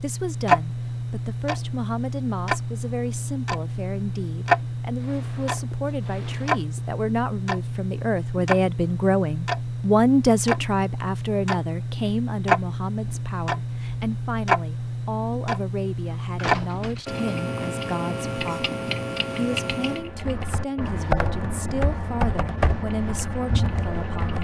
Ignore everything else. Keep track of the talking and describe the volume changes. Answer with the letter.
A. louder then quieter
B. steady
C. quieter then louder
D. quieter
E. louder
A.